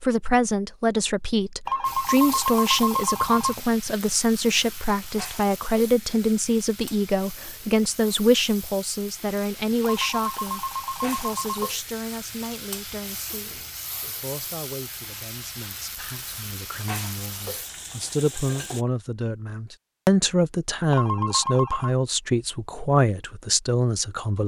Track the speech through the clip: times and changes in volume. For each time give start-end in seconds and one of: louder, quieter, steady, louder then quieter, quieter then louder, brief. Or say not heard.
0.0-24.4 quieter then louder.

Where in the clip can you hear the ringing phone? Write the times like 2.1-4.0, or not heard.
1.6-3.6, 9.8-11.8, 20.9-21.9.